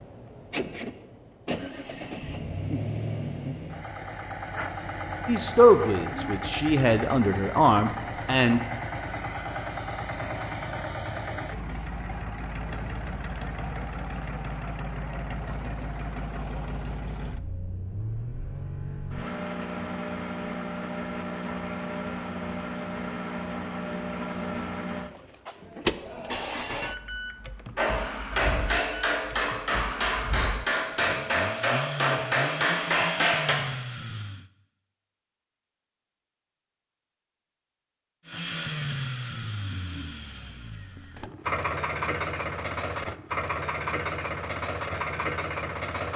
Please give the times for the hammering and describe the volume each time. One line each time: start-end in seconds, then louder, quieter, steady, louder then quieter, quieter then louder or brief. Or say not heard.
27.8-33.5 steady.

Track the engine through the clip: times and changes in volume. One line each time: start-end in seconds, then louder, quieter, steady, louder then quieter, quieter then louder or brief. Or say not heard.
0.0-34.5 steady
38.2-46.1 quieter then louder.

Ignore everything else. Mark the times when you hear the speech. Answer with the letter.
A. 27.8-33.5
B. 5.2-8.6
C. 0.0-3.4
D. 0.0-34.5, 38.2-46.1
B.